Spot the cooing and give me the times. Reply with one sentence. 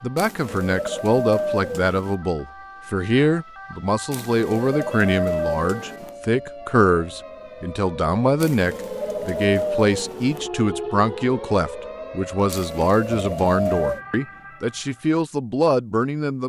The cooing can be heard from 0.1 to 2.1 s, from 4.1 to 6.2 s, from 8.4 to 10.5 s and from 12.5 to 14.0 s.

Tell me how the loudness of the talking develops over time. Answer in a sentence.
The loudness of the talking stays about the same.